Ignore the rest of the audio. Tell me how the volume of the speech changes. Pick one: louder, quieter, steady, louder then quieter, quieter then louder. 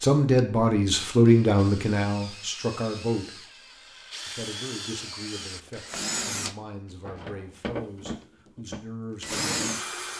quieter.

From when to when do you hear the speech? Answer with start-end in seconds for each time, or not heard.
0.0-3.5, 4.2-9.8.